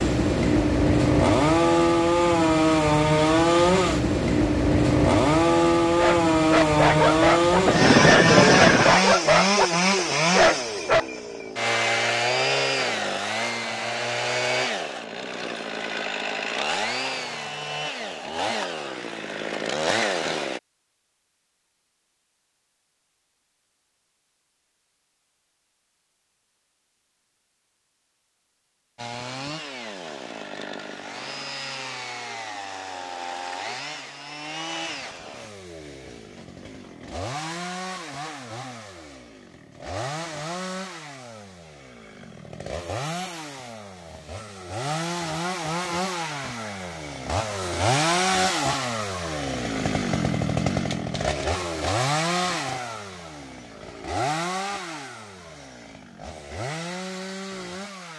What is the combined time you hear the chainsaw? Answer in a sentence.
You can hear the chainsaw for 50 seconds altogether.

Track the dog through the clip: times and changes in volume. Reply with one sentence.
The dog can be heard from 6.0 to 11.1 s, at a steady volume.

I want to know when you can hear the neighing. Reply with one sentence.
The neighing can be heard from 7.7 to 9.0 s.